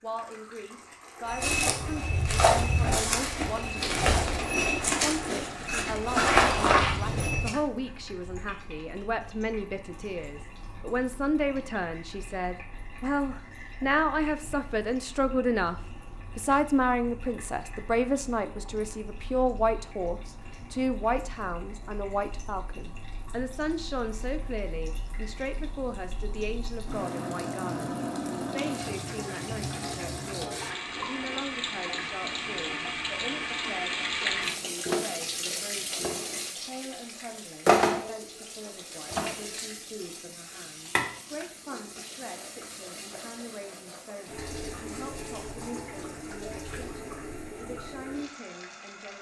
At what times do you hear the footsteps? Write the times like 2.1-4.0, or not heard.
1.2-7.5.